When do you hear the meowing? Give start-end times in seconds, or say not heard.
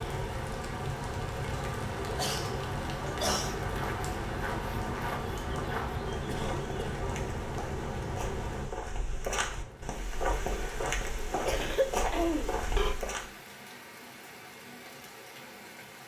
not heard.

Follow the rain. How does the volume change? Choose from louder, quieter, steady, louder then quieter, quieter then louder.
quieter.